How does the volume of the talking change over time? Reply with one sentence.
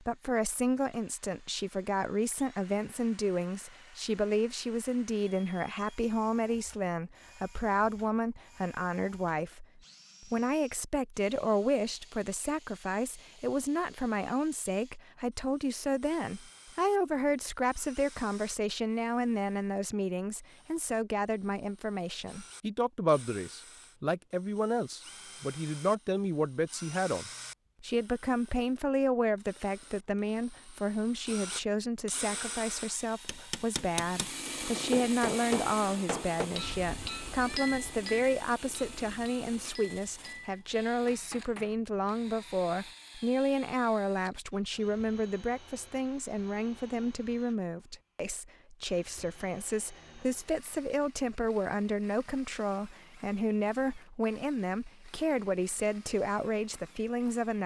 The volume of the talking stays about the same.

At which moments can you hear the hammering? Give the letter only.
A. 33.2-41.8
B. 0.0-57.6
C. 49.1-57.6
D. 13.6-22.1
A.